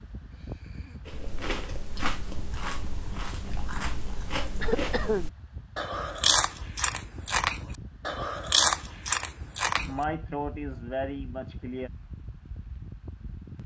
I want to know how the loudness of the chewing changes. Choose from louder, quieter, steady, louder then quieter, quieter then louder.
louder.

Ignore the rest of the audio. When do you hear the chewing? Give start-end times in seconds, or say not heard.
1.1-10.1.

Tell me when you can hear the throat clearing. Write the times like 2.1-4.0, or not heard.
0.3-1.4, 4.6-5.3, 9.8-11.9.